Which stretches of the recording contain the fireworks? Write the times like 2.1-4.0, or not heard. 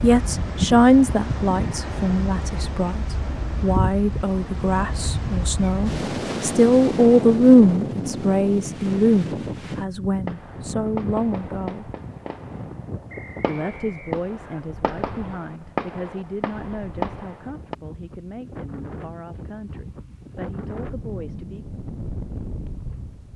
10.2-17.8.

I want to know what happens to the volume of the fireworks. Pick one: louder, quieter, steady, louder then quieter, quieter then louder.
quieter then louder.